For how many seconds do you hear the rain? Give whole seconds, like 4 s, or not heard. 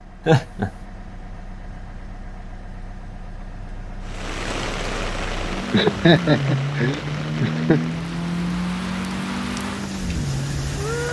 7 s.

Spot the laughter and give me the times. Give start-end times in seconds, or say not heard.
0.2-0.7, 5.7-7.8.